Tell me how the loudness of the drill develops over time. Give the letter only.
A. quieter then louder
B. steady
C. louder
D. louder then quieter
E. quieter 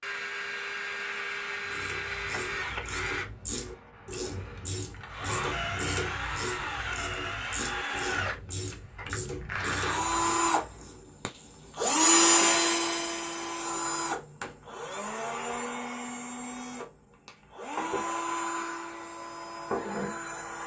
D.